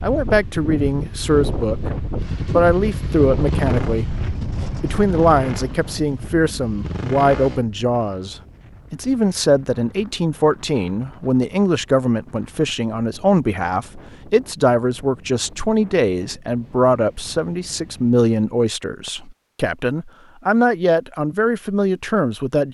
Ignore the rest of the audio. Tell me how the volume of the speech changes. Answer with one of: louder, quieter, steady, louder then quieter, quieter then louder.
steady.